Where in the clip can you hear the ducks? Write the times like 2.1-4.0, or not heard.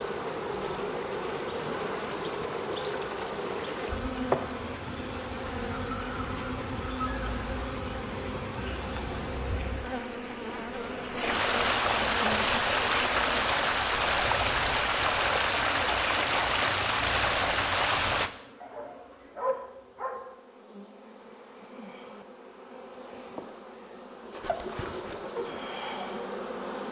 not heard.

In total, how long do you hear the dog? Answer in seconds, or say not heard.
2 s.